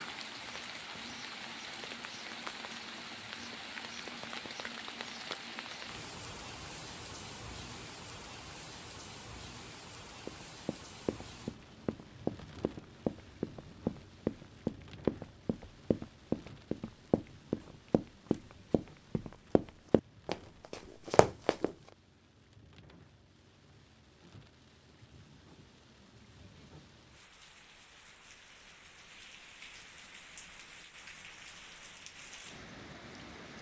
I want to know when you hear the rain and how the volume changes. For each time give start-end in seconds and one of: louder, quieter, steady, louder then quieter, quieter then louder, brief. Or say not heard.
0.0-33.5 quieter then louder.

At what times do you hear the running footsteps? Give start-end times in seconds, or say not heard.
10.2-21.7.